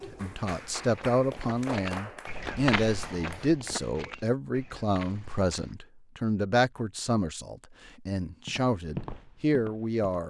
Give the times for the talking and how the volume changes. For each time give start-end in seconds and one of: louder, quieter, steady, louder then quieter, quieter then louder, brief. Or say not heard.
0.1-10.2 steady.